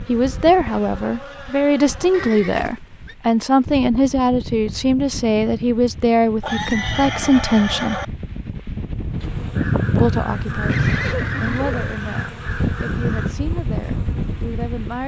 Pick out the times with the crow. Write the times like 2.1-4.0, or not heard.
9.6-13.3.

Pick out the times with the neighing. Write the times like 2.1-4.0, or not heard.
2.1-3.1, 6.4-8.1, 10.7-11.9.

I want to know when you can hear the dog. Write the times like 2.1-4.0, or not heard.
not heard.